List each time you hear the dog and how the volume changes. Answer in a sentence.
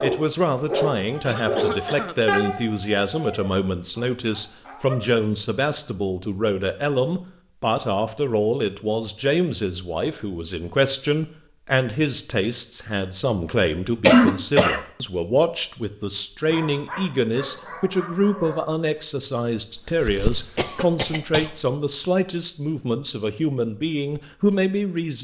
The dog can be heard from 0.0 to 5.0 s, getting quieter; and briefly from 16.5 to 18.6 s.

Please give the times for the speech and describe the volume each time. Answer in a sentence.
The speech can be heard from 0.0 to 25.2 s, at a steady volume.